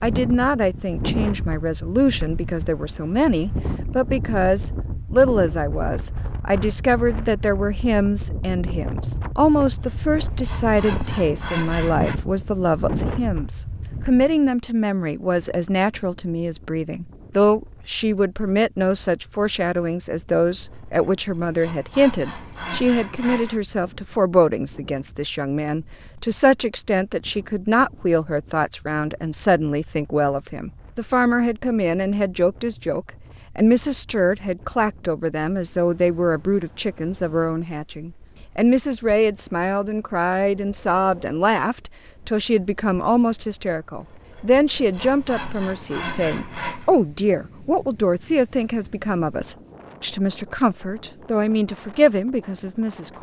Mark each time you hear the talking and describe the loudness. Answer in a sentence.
The talking can be heard from 0.0 to 53.1 s, at a steady volume.